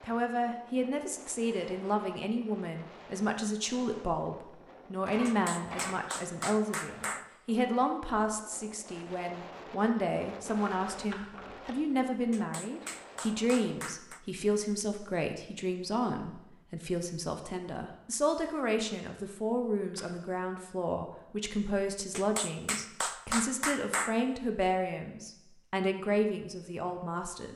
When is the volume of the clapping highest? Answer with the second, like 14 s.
24 s.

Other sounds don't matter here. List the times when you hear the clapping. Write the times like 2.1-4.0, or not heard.
5.2-7.2, 12.3-14.2, 22.1-24.1.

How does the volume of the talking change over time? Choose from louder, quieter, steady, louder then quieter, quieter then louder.
steady.